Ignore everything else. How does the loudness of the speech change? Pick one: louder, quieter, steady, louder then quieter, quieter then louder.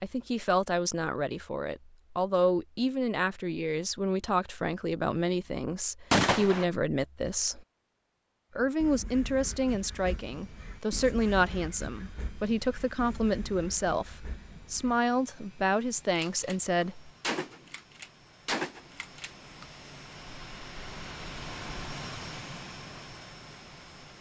steady.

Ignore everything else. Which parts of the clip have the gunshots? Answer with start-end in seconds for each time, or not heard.
6.1-6.7, 16.1-19.6.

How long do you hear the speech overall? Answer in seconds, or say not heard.
16 s.